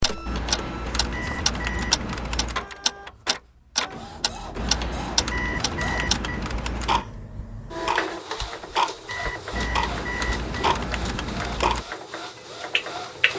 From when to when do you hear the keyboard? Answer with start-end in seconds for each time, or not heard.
0.2-2.7, 4.5-7.0, 9.5-11.8.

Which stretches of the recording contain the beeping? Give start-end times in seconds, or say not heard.
1.1-2.0, 5.3-6.5, 9.1-10.5.